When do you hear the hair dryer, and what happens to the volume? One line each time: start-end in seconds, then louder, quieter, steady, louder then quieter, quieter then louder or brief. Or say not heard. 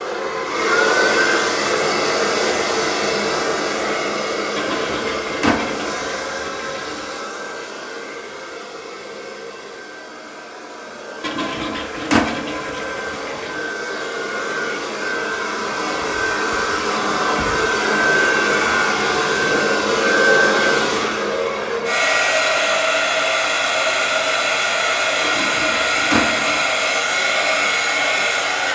0.0-28.6 quieter then louder.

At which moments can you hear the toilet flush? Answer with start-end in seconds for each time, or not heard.
4.5-7.0, 11.2-13.7, 25.2-26.7.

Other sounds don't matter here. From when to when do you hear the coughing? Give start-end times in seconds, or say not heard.
not heard.